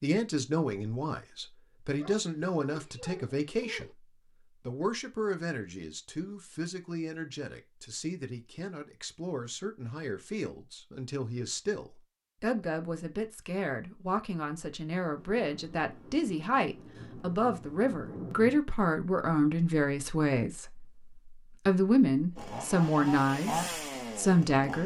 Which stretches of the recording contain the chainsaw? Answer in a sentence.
The chainsaw can be heard from 22.4 to 24.8 s.